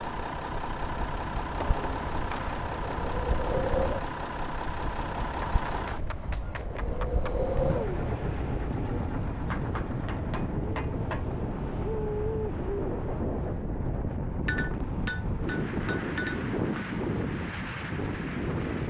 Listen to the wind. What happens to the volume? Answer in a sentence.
The volume of the wind stays about the same.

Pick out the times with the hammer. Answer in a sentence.
You can hear the hammer from 1.6 to 2.6 s, from 5.4 to 7.3 s, from 9.4 to 11.3 s and from 14.4 to 17.0 s.